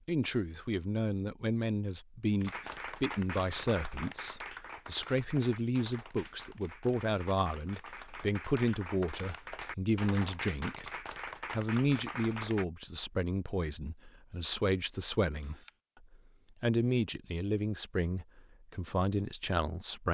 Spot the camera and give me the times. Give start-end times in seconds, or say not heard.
15.3-15.8.